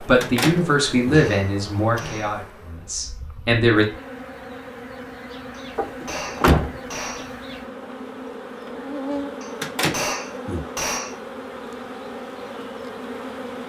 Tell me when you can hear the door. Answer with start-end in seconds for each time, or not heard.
0.2-1.2, 5.8-7.2, 9.6-10.7.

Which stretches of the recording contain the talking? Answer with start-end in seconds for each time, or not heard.
0.1-3.9.